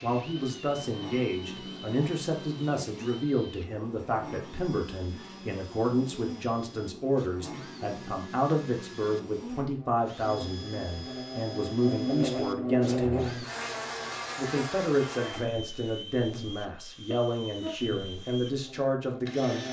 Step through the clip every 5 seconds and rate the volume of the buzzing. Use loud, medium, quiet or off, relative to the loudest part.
medium, medium, loud, medium.